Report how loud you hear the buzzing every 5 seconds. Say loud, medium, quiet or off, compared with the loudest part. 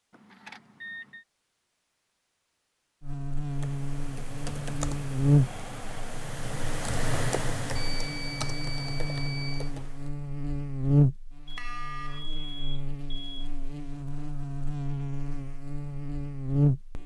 medium, loud, loud, loud.